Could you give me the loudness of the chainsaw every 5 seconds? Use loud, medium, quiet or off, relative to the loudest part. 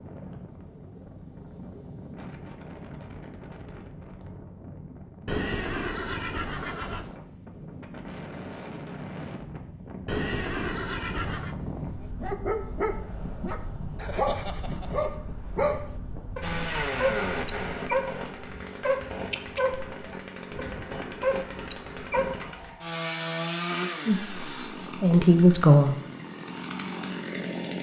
off, off, off, loud, loud, loud.